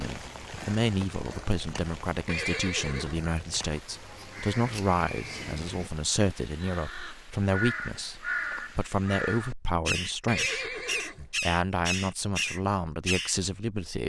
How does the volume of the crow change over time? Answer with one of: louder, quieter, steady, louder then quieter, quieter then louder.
louder.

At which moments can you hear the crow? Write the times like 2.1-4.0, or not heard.
3.9-13.3.